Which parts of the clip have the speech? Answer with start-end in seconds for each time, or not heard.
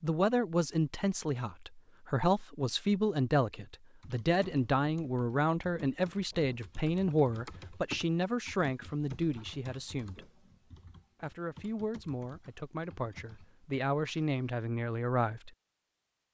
0.0-10.2, 11.2-15.5.